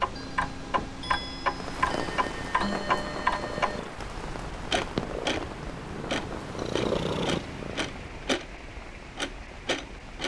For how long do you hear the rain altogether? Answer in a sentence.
You can hear the rain for 9 seconds altogether.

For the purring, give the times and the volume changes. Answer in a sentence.
You can hear the purring from 0.0 to 8.4 s, getting louder.